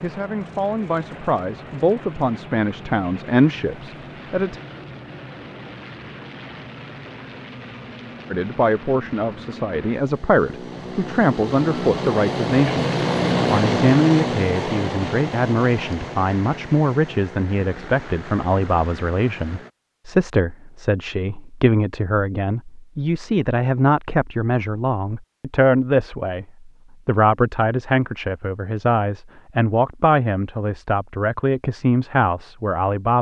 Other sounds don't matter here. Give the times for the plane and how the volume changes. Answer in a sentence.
You can hear the plane from 0.0 to 19.7 s, getting louder then quieter.